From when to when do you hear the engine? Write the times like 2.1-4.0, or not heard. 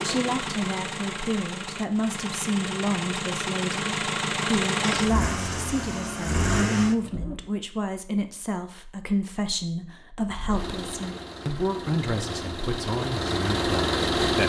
0.0-7.5, 10.2-14.4.